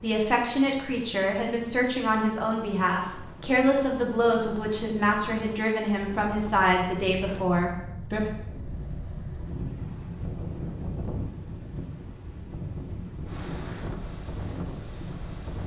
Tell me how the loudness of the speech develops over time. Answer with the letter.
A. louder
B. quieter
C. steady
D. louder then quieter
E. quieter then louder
C.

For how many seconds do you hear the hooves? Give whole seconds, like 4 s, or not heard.
not heard.